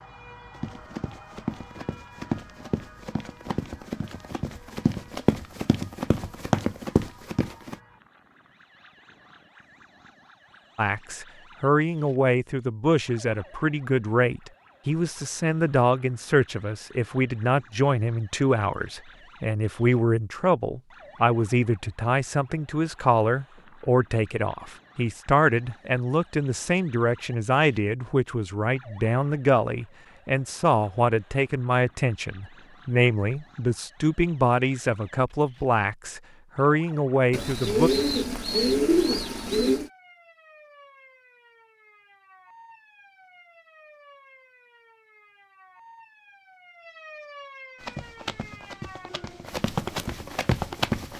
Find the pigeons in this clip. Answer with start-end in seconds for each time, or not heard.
37.3-39.9.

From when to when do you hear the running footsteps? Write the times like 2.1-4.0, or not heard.
0.5-7.8, 47.8-51.1.